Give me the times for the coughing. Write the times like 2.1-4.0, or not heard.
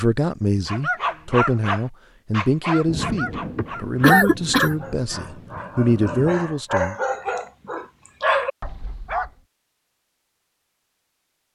3.5-4.8.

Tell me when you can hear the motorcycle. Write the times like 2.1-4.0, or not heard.
not heard.